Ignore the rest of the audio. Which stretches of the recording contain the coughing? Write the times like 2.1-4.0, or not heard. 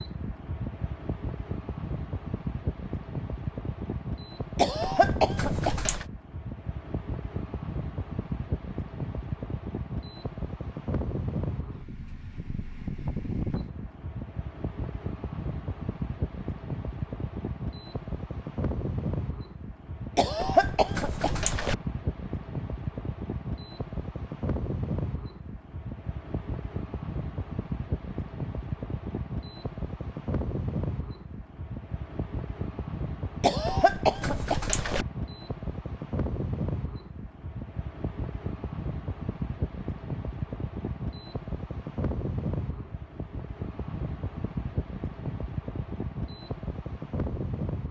4.5-6.0, 20.1-21.8, 33.4-35.0.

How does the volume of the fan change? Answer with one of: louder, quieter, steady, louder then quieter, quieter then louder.
steady.